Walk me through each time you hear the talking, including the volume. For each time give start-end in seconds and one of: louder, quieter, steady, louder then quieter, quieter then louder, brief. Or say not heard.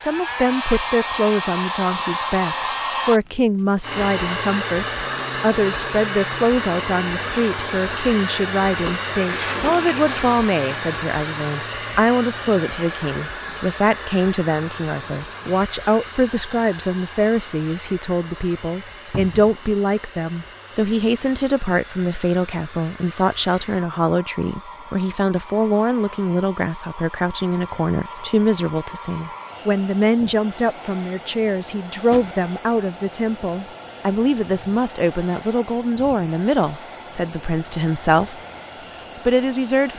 0.0-38.4 steady
39.1-39.9 brief.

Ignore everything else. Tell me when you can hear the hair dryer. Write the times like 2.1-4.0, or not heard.
0.0-39.9.